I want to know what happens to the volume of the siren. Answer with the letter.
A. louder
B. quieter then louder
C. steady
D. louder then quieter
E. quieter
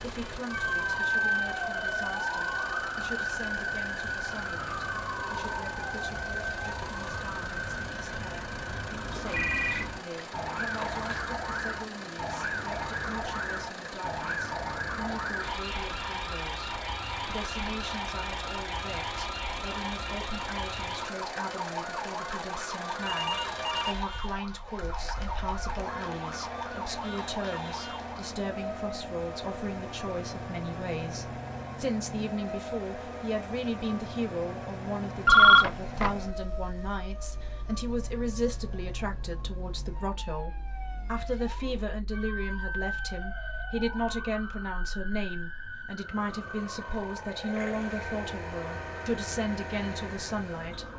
E.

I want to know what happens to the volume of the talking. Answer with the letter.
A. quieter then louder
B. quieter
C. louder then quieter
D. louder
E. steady
D.